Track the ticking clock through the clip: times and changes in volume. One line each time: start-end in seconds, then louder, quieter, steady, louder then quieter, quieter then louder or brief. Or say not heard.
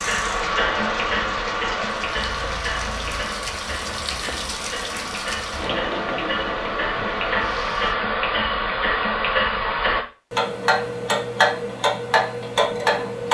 0.0-13.2 quieter then louder.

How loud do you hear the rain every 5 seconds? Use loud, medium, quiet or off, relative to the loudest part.
loud, loud, off.